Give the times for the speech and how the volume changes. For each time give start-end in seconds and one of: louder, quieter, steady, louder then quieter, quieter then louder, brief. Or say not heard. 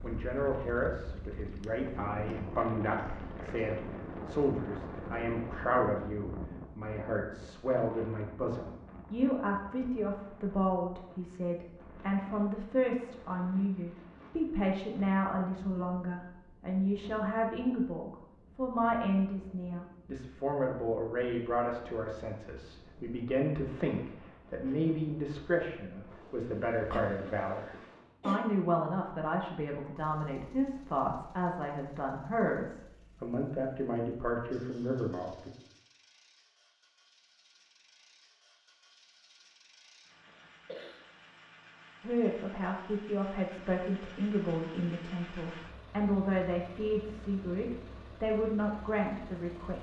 0.0-35.5 steady
42.0-49.7 steady.